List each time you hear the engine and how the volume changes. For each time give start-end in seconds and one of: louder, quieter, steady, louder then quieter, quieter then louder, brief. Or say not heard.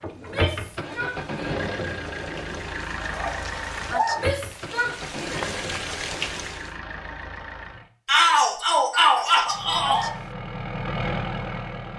0.0-7.9 quieter
9.4-11.9 brief.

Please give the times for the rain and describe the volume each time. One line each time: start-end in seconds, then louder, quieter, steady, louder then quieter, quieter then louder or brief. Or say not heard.
0.0-6.8 louder.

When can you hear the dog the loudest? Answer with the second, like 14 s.
4 s.